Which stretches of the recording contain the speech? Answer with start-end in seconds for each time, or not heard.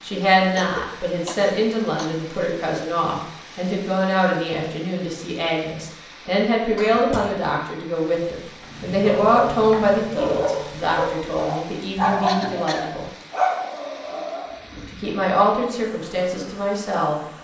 0.0-13.1, 14.9-17.1.